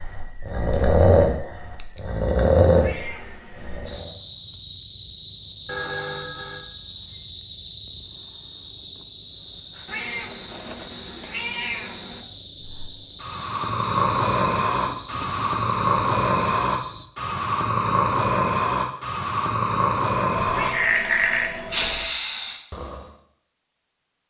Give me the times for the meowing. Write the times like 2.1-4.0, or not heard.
2.8-4.0, 9.8-12.2, 20.5-22.0.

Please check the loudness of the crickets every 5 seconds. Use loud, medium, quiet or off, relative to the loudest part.
loud, loud, loud, loud, off.